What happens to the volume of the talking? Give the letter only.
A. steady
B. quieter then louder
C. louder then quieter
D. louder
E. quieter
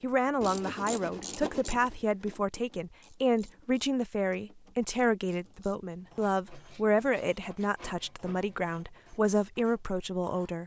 A.